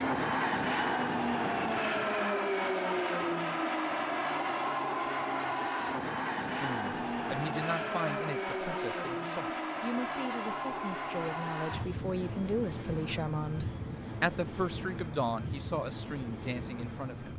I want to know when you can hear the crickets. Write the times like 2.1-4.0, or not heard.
not heard.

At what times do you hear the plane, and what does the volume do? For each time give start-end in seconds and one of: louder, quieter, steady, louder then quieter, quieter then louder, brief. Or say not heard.
0.0-17.3 quieter.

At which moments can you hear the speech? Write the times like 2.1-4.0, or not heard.
6.5-17.3.